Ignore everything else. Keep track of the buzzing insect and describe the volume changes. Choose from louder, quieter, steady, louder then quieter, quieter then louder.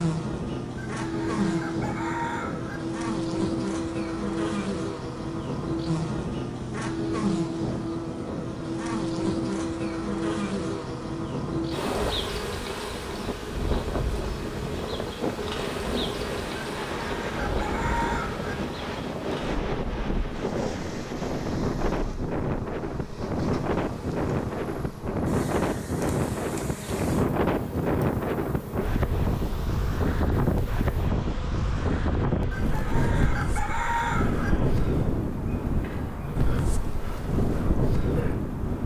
quieter.